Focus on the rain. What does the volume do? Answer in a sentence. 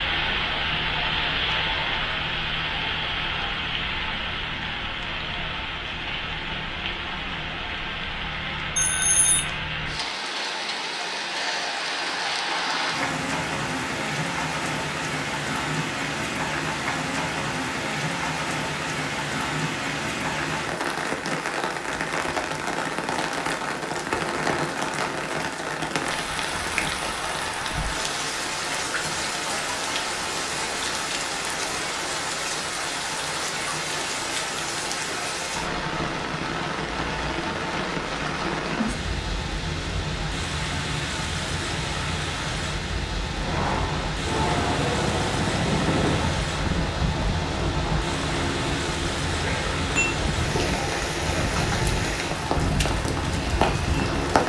The volume of the rain stays about the same.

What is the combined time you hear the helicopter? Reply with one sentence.
The helicopter can be heard for 11 seconds in total.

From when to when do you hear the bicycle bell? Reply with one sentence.
You can hear the bicycle bell from 8.8 to 9.4 s and from 49.5 to 50.1 s.